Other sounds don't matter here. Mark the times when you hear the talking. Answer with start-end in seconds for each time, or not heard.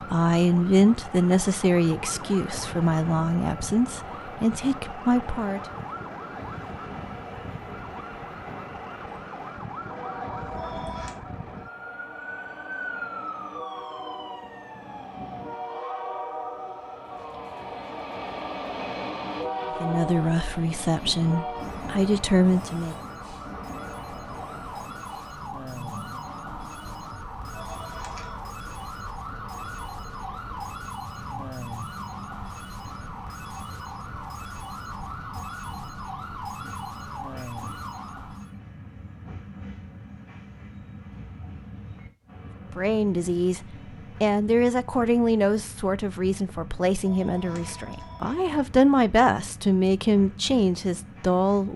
0.1-5.6, 19.8-22.9, 42.8-43.6, 44.2-51.7.